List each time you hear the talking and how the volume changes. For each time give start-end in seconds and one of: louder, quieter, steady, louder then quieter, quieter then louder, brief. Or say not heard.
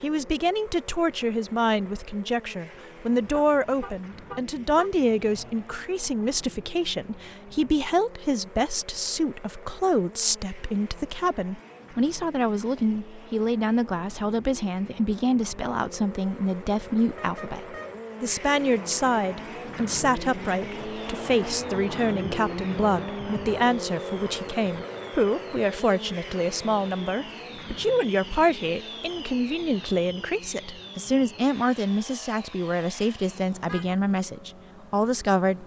0.0-35.6 steady.